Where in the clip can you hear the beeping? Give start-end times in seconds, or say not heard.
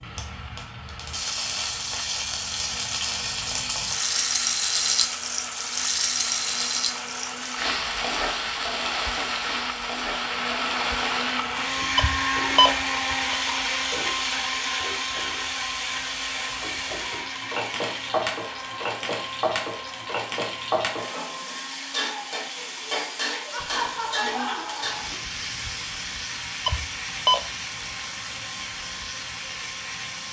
11.9-13.3, 26.6-27.4.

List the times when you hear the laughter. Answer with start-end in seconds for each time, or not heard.
23.5-25.1.